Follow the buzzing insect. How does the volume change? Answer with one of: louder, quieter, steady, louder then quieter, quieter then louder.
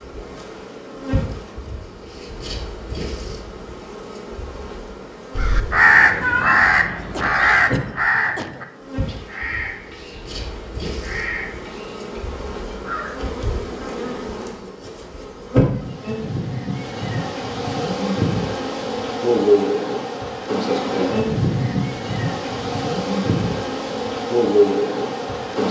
louder.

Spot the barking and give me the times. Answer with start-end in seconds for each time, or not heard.
not heard.